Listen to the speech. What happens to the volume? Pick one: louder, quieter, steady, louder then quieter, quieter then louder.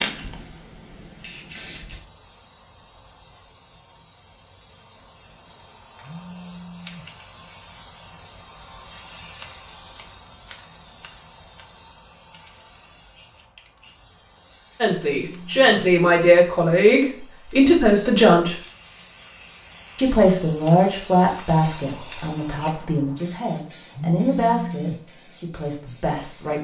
quieter.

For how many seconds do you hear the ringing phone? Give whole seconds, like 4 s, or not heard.
3 s.